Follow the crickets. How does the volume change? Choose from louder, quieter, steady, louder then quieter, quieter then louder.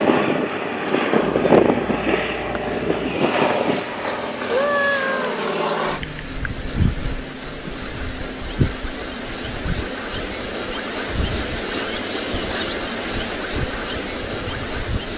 louder.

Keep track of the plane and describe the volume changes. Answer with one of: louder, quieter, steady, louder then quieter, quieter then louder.
quieter.